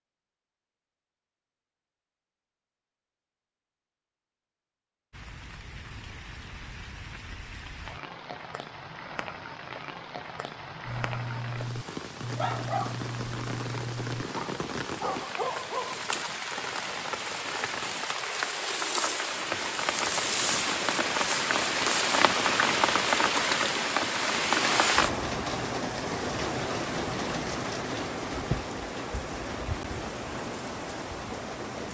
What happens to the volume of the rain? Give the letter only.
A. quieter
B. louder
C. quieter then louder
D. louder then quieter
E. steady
D.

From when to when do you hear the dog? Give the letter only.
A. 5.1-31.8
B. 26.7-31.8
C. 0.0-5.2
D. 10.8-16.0
D.